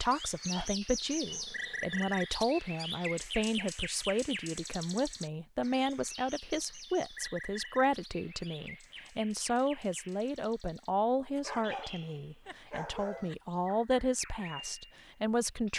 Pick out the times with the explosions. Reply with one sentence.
You can't hear the explosions here.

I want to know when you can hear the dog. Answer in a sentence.
You can hear the dog from 0.6 to 2.0 s and from 11.3 to 13.3 s.